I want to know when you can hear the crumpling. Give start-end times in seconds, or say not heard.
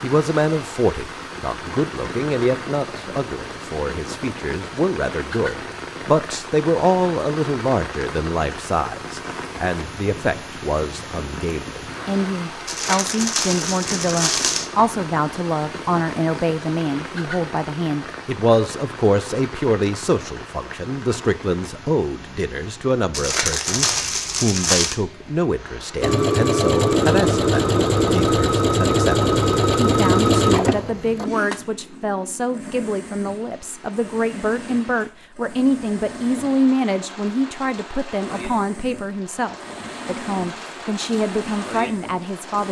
12.7-14.7, 23.1-24.9.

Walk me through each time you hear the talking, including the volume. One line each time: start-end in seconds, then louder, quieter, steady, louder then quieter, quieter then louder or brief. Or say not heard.
0.0-42.6 steady.